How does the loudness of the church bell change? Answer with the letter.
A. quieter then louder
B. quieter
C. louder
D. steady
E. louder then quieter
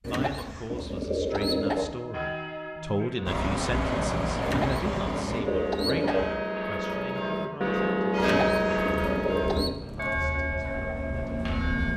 E.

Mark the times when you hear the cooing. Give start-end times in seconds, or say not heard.
0.0-2.0, 4.4-6.3, 8.2-9.8.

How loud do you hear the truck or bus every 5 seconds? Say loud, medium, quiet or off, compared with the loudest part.
loud, medium, medium.